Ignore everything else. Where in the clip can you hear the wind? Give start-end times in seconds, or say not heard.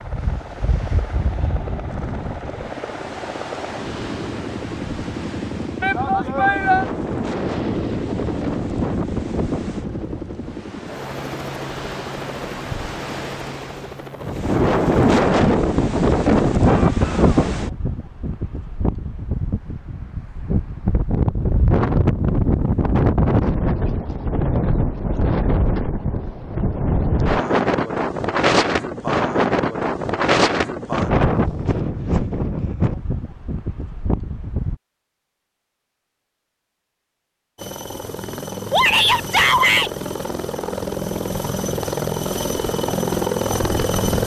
0.0-34.8.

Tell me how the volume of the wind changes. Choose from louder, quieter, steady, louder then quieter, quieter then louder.
louder.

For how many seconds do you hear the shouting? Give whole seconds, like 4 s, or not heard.
3 s.